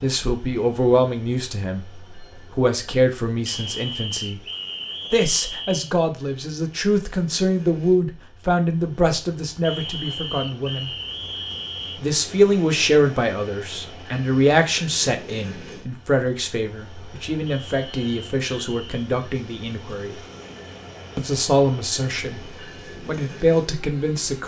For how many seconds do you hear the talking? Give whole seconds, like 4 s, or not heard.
21 s.